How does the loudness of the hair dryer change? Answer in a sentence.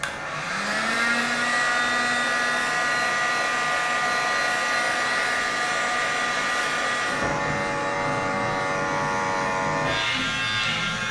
The volume of the hair dryer goes down.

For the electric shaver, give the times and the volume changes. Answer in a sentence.
The electric shaver can be heard from 0.0 to 11.0 s, getting louder.